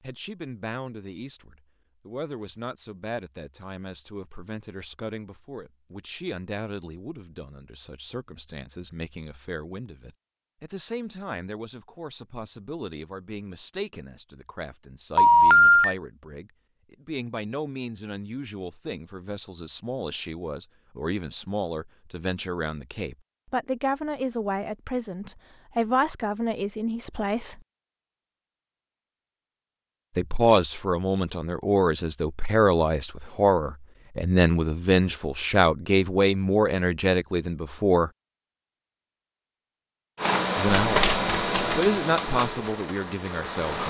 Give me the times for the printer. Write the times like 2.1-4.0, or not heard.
40.1-43.8.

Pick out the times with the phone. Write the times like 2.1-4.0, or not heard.
15.2-15.9.